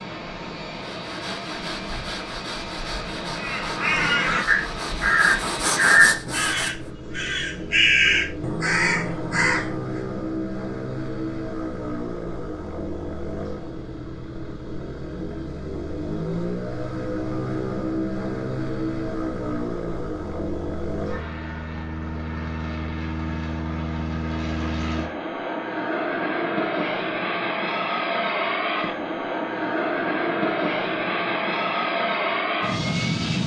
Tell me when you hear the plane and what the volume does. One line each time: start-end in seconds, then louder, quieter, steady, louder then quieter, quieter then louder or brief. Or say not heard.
0.0-33.4 louder.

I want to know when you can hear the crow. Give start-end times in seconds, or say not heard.
3.4-10.0.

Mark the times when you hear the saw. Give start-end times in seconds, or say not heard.
0.7-6.8.